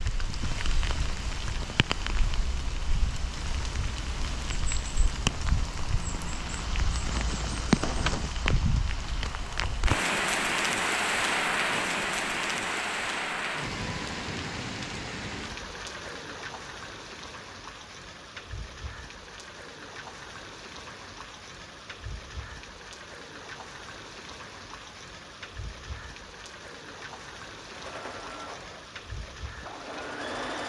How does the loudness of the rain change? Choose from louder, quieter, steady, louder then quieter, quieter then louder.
louder then quieter.